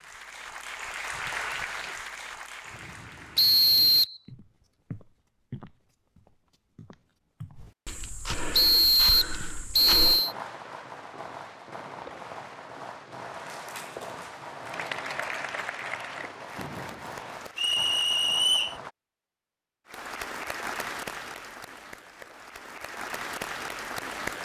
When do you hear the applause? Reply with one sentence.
You can hear the applause from 0.0 to 3.5 s, from 13.3 to 18.2 s and from 19.9 to 24.4 s.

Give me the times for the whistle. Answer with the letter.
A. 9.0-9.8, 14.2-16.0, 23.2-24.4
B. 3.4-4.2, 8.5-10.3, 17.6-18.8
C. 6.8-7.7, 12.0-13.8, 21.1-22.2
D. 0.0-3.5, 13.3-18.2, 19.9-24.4
B.